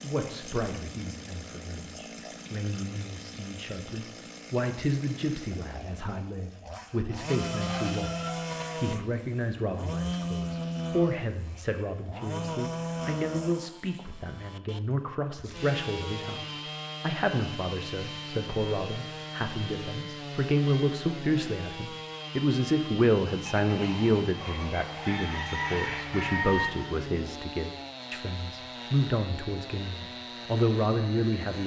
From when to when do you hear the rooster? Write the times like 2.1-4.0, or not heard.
7.3-8.6, 23.4-26.7.